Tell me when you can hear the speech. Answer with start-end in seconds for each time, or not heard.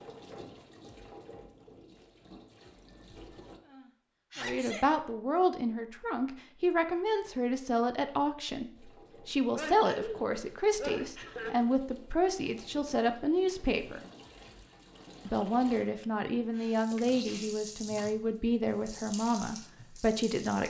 4.3-14.0, 15.2-20.6.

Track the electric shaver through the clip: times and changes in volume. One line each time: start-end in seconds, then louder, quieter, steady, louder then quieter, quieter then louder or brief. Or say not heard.
not heard.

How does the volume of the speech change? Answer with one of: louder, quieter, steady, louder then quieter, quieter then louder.
steady.